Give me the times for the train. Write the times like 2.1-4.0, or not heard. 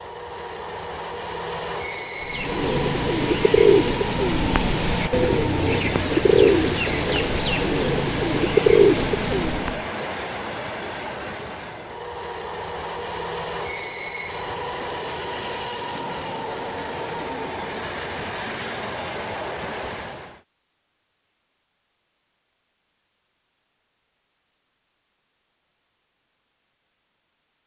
0.0-20.4.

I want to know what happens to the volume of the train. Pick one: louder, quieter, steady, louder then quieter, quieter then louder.
steady.